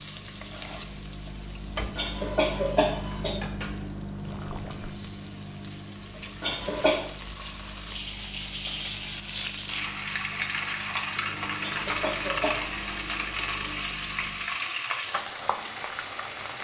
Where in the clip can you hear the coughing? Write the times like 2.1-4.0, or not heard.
1.9-3.4, 6.4-7.0, 11.6-12.8.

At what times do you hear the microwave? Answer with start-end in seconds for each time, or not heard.
0.0-14.6.